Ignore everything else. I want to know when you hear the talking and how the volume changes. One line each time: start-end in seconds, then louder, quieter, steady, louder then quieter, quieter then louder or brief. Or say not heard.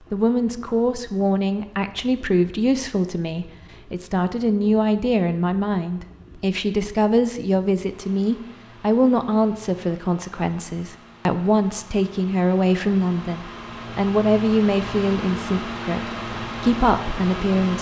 0.1-17.7 steady.